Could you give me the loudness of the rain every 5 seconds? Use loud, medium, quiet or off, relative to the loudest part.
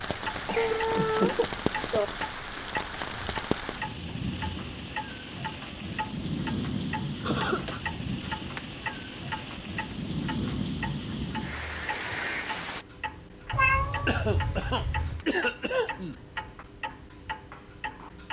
loud, loud, loud, off.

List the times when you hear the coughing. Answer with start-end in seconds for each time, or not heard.
0.5-1.5, 7.2-7.8, 14.1-16.2.